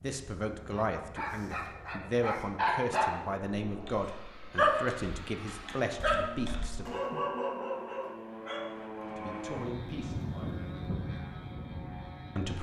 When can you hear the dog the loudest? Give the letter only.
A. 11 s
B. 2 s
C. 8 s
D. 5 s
D.